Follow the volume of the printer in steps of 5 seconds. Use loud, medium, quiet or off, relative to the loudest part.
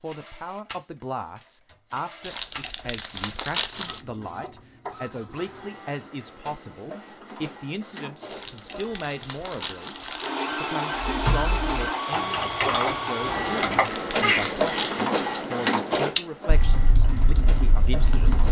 quiet, quiet, loud, loud.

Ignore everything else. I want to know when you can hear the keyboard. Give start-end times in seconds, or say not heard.
10.9-18.4.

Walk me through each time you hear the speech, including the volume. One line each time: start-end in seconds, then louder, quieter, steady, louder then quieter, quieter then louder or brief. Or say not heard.
0.0-18.4 steady.